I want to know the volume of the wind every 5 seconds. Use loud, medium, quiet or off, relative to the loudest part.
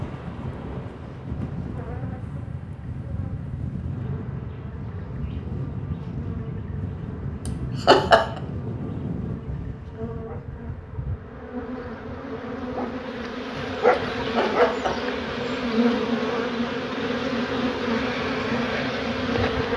loud, loud, medium, medium.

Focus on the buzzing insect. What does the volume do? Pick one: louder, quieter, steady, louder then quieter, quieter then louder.
louder.